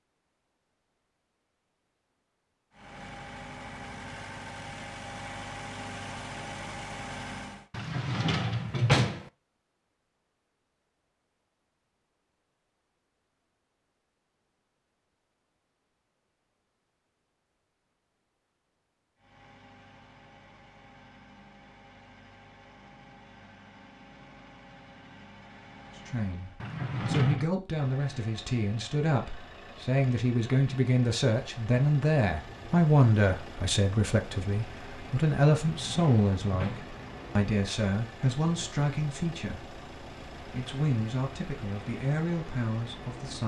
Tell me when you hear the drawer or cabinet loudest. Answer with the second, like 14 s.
9 s.